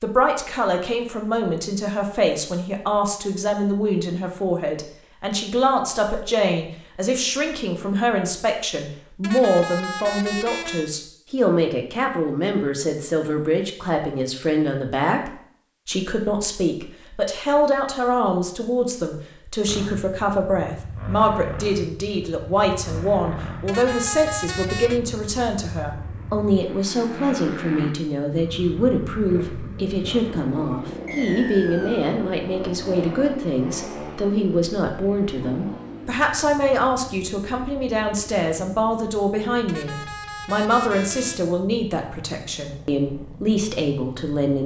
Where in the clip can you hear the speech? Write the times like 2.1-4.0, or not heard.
0.0-44.6.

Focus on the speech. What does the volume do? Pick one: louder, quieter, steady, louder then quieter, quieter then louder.
steady.